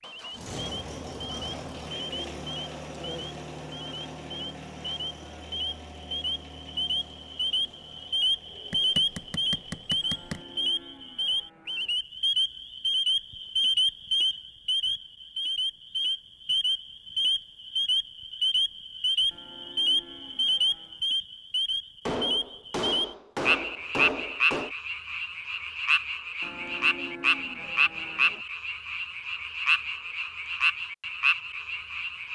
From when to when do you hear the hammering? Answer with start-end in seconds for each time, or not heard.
8.7-10.4, 22.1-24.7.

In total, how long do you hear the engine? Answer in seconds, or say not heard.
11 s.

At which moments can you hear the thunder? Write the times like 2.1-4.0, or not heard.
not heard.